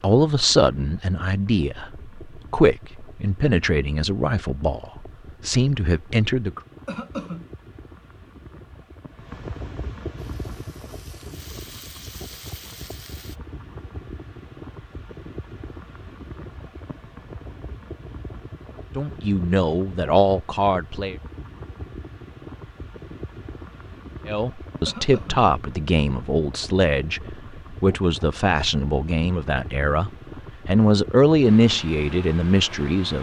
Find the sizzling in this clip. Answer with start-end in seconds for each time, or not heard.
10.2-13.4.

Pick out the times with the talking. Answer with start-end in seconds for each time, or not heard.
0.0-6.6, 18.9-21.1, 24.2-33.1.